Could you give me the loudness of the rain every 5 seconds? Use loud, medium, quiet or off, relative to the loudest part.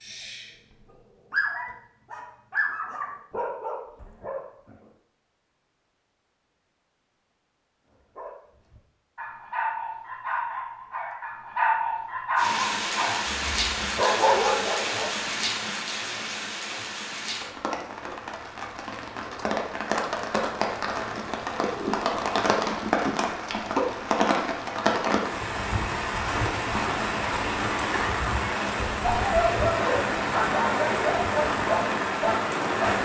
off, off, loud, medium, loud, loud, loud.